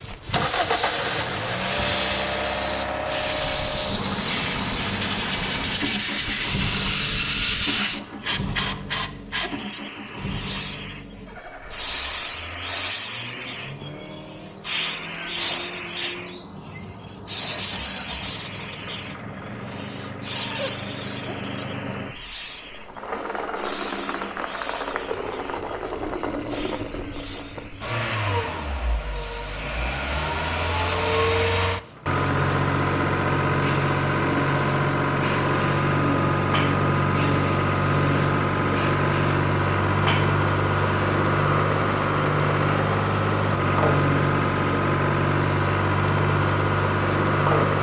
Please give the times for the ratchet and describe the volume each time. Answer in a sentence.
You can't hear the ratchet here.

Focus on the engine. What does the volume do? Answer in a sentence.
The volume of the engine goes down, then up.